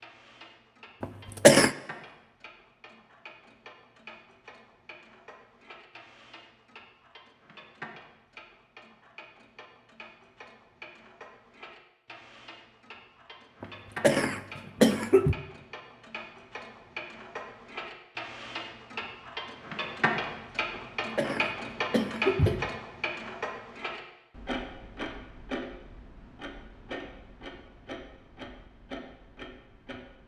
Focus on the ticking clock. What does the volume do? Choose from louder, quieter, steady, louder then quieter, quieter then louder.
louder then quieter.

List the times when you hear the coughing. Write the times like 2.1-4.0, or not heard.
1.0-1.7, 13.6-15.3, 20.8-22.7.